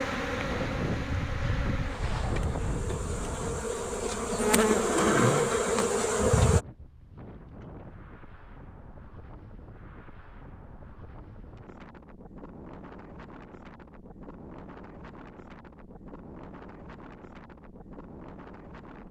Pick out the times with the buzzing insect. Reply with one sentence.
You can hear the buzzing insect from 0.0 to 6.6 s.